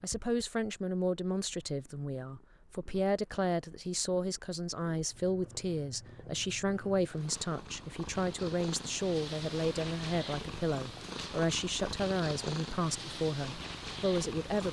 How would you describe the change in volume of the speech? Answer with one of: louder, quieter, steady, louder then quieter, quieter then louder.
steady.